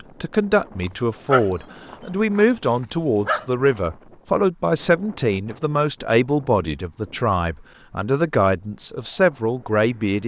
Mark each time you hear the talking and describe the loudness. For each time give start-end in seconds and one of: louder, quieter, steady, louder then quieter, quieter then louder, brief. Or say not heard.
0.2-10.2 steady.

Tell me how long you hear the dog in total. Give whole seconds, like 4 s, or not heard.
3 s.